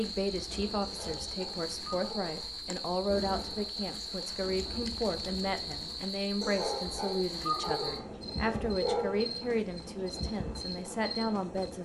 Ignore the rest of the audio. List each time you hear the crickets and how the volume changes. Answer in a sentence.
You can hear the crickets from 0.0 to 11.8 s, at a steady volume.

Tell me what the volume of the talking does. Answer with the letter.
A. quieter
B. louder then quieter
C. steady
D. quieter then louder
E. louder
C.